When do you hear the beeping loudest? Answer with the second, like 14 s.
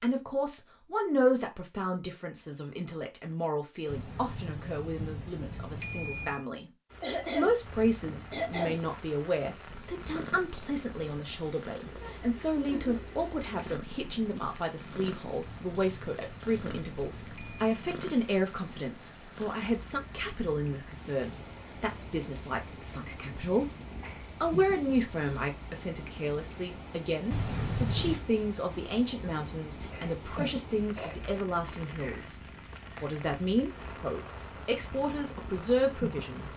28 s.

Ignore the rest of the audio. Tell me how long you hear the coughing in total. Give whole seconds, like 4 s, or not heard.
3 s.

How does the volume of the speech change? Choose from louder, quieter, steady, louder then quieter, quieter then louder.
steady.